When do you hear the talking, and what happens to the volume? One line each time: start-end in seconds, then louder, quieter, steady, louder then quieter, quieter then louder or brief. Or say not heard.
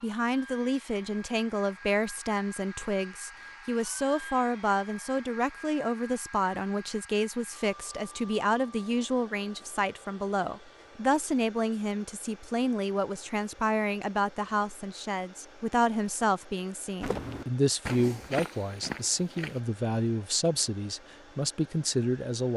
0.0-22.5 steady.